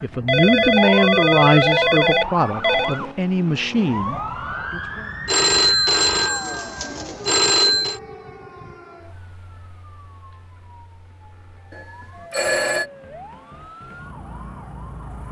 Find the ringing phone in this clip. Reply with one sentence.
You can hear the ringing phone from 0.2 to 3.0 s, from 5.2 to 8.0 s and from 11.7 to 12.8 s.